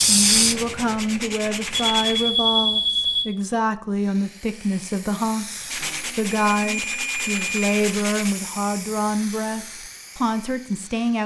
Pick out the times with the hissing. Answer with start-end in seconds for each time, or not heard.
0.0-2.1, 3.9-11.2.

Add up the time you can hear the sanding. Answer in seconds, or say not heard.
5 s.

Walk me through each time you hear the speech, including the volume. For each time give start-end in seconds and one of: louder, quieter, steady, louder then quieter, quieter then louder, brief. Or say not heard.
0.1-11.2 steady.